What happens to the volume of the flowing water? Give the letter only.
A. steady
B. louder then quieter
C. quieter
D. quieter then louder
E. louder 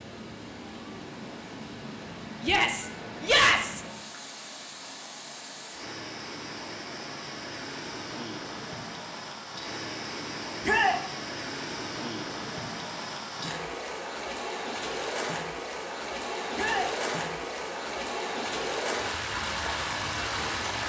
E.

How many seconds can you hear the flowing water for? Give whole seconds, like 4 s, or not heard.
21 s.